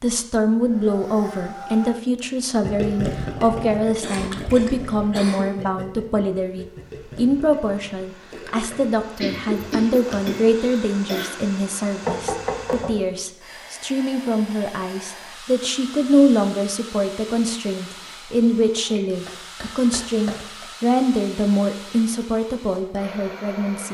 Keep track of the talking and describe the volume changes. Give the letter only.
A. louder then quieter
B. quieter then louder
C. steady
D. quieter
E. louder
C.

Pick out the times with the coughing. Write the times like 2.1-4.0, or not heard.
4.0-5.5, 9.2-11.3, 18.9-20.6.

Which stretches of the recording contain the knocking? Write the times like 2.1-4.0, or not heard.
12.0-12.9.